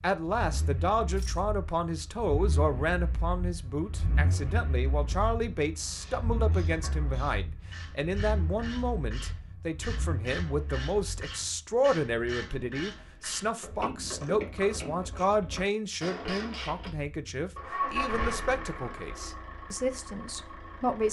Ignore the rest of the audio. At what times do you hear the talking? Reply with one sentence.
The talking can be heard from 0.0 to 21.0 s.